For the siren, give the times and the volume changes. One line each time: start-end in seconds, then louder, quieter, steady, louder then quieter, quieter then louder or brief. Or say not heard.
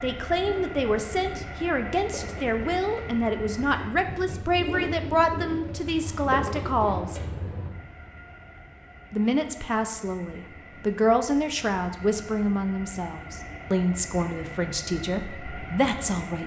not heard.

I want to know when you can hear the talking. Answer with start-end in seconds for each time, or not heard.
0.0-7.2, 9.1-16.4.